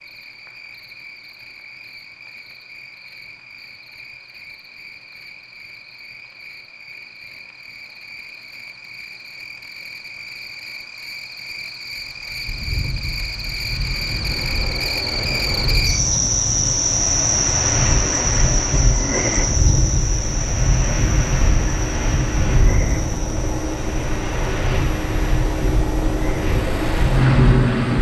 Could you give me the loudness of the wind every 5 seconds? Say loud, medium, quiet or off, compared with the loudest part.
off, off, medium, loud, loud, loud.